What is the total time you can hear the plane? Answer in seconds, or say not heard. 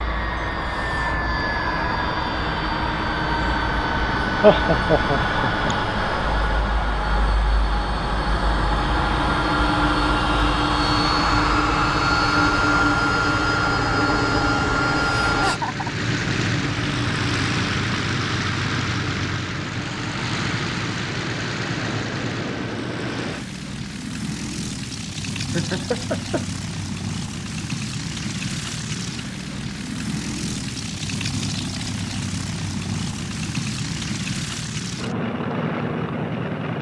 37 s.